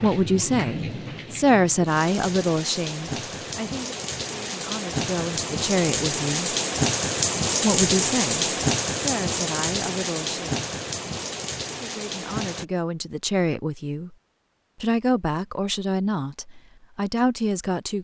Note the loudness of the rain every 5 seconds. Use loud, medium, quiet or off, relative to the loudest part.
medium, loud, medium, off.